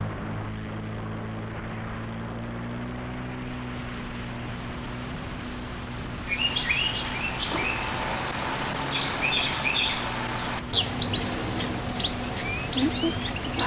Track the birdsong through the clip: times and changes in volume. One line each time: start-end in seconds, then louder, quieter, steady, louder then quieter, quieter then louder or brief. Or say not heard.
6.2-13.6 steady.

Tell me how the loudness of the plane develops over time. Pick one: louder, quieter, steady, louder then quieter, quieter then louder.
steady.